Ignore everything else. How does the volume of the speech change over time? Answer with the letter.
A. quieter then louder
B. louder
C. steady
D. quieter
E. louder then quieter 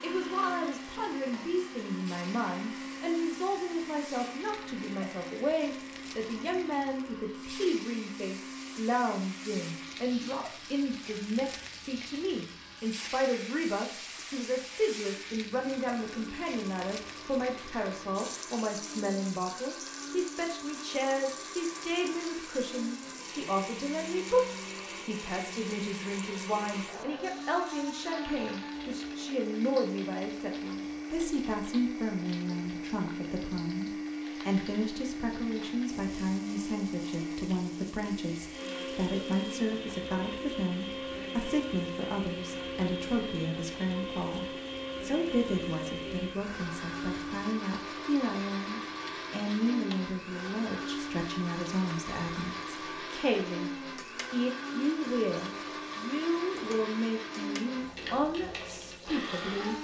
C.